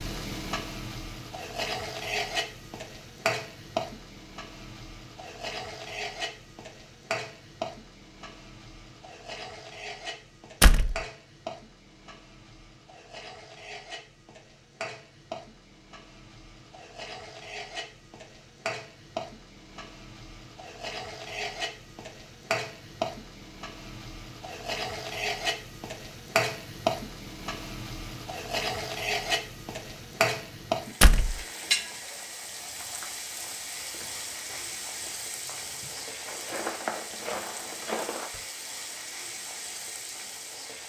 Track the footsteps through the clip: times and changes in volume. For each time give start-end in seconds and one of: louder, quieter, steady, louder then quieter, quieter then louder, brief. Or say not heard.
32.6-38.4 louder.